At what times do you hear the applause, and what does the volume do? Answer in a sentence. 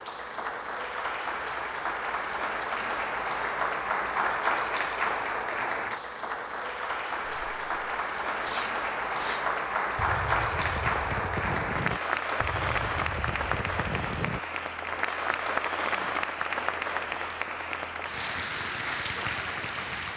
You can hear the applause from 0.0 to 20.1 s, at a steady volume.